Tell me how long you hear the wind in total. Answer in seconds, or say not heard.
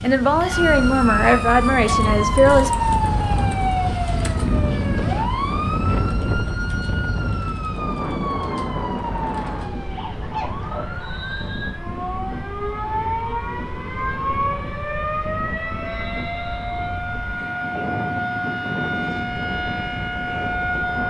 21 s.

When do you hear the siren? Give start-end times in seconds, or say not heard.
0.0-21.0.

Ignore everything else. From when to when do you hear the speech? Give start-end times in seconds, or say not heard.
0.0-2.7.